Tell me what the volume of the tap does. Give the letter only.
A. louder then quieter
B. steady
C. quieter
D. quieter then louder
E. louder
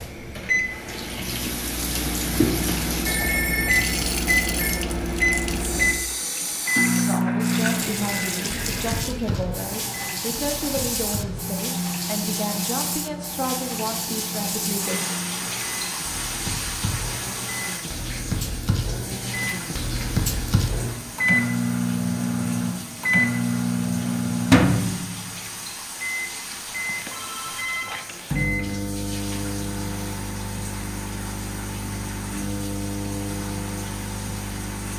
C.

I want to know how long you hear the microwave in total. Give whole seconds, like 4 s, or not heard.
35 s.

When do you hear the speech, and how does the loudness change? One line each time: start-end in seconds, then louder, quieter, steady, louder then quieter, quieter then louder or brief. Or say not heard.
7.0-15.0 steady.